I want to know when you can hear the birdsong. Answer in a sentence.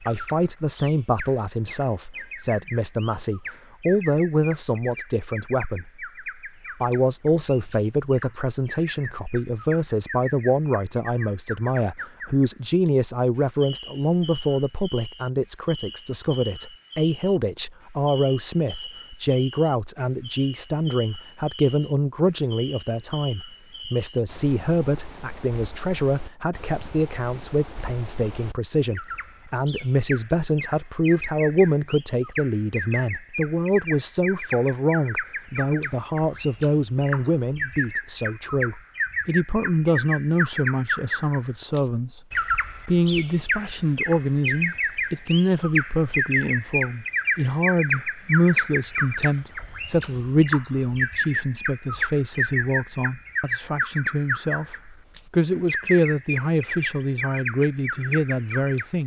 The birdsong can be heard from 0.0 to 59.0 s.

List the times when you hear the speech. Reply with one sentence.
You can hear the speech from 0.1 to 5.9 s, from 6.8 to 42.2 s and from 42.9 to 59.0 s.